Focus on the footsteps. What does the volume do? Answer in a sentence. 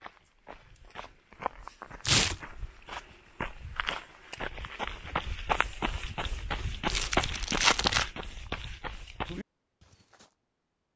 The volume of the footsteps goes up, then down.